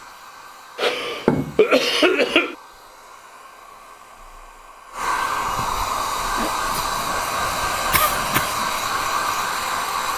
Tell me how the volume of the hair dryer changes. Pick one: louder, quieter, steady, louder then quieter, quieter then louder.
louder.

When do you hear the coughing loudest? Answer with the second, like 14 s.
2 s.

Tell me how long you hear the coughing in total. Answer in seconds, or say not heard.
4 s.